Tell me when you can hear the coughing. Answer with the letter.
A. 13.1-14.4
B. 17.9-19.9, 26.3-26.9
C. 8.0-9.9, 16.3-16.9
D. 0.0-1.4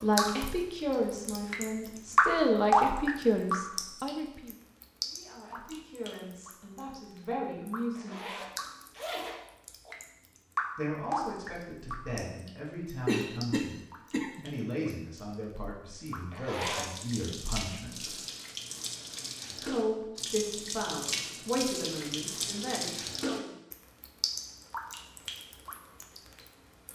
A.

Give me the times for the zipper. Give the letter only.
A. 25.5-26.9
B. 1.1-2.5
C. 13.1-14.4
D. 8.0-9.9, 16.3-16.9
D.